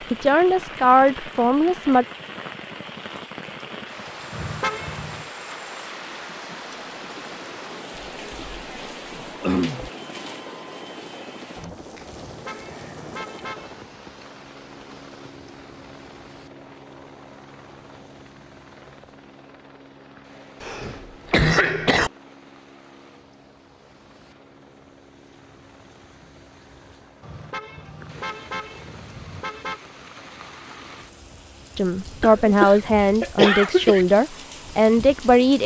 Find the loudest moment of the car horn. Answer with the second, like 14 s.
5 s.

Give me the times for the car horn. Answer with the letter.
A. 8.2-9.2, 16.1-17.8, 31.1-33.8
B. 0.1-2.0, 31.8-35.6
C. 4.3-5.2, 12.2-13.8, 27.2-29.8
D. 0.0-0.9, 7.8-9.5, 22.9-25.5
C.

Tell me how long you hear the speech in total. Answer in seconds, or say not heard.
6 s.